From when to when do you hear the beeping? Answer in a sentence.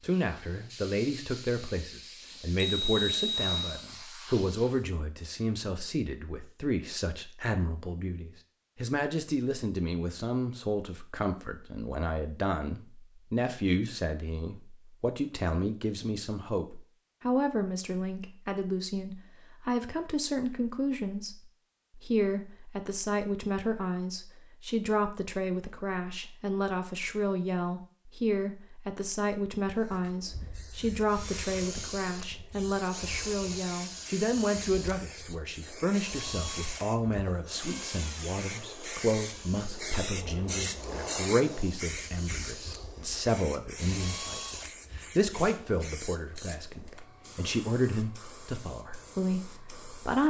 You can hear the beeping from 2.5 to 3.6 s.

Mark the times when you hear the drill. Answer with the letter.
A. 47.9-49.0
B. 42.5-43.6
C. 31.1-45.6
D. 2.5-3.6
C.